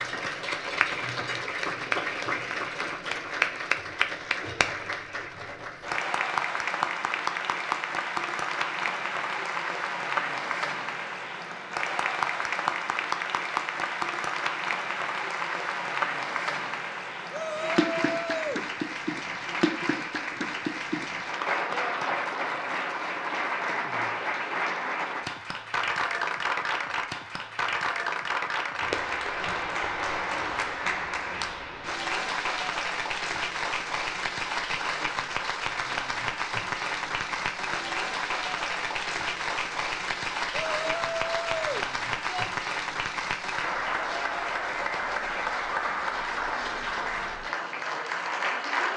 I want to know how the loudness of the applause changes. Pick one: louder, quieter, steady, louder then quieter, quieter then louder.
steady.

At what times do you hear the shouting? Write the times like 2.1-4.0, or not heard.
17.3-18.7, 40.8-42.5.